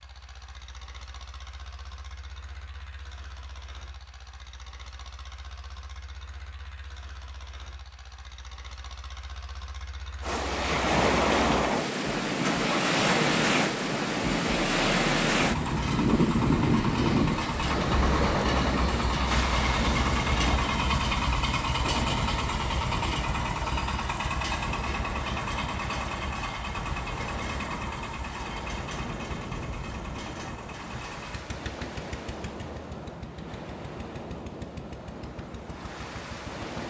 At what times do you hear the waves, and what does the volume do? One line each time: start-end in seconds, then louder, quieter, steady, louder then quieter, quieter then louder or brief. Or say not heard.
10.2-36.8 quieter.